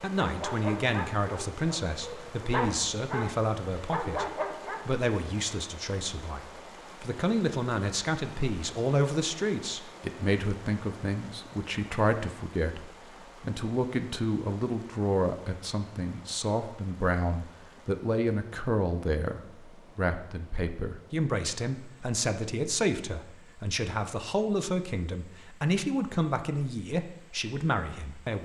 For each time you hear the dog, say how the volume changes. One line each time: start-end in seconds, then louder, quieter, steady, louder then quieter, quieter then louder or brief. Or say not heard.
0.1-5.0 quieter then louder.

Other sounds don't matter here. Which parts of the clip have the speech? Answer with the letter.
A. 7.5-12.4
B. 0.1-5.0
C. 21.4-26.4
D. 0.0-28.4
D.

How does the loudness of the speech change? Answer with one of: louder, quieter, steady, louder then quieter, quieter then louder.
steady.